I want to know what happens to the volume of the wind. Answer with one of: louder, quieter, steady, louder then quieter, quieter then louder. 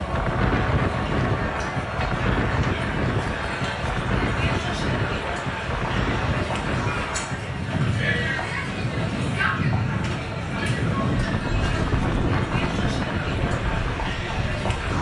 steady.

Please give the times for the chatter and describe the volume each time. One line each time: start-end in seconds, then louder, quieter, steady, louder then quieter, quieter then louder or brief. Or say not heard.
0.0-14.9 steady.